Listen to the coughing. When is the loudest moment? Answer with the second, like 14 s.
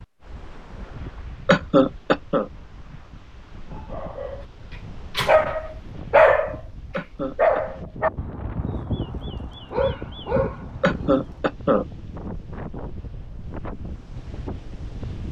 2 s.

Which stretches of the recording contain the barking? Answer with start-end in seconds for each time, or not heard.
3.8-4.5, 5.2-11.3.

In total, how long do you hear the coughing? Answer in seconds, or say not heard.
3 s.